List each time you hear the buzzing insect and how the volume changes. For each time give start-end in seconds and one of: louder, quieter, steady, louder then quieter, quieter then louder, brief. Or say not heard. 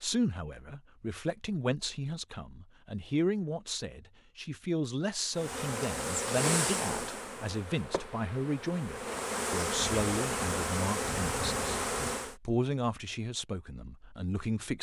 5.3-12.3 quieter then louder.